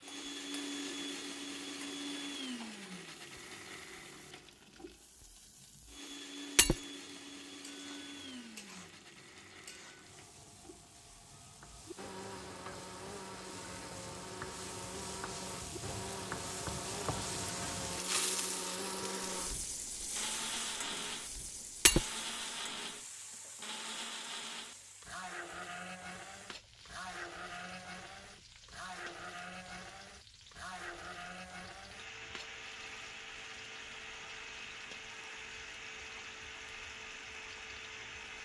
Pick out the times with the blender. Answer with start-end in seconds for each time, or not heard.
0.0-38.4.